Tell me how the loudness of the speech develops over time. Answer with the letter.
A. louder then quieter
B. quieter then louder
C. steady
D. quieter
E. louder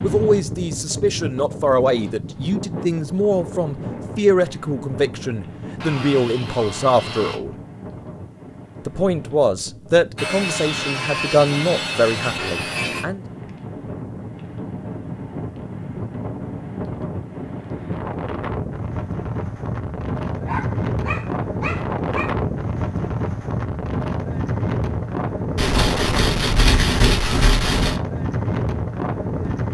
C.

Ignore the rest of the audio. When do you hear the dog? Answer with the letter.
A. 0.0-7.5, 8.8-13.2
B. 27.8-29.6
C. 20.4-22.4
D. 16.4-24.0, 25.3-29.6
C.